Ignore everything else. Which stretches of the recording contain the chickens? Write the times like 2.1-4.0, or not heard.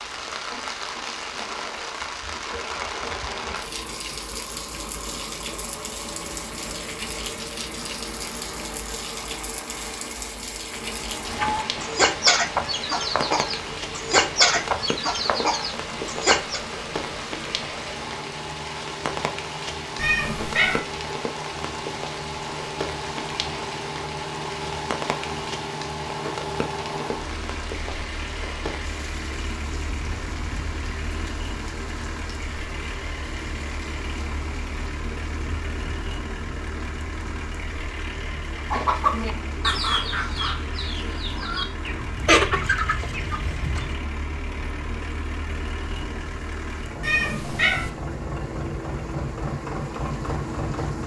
11.2-16.6, 38.7-44.0.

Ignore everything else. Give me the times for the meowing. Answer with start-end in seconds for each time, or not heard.
19.9-20.8, 47.0-47.9.